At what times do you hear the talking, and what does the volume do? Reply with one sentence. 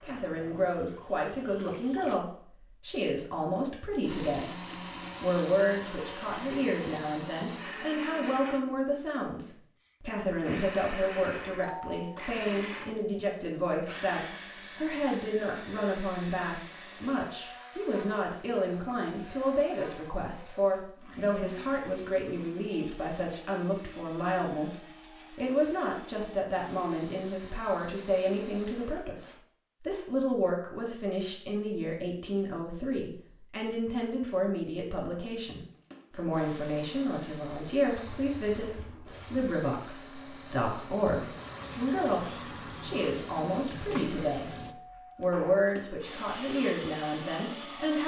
The talking can be heard from 0.0 to 4.5 s, at a steady volume; from 5.2 to 44.5 s, at a steady volume; and briefly from 45.1 to 48.0 s.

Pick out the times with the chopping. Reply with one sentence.
The chopping can't be heard in this clip.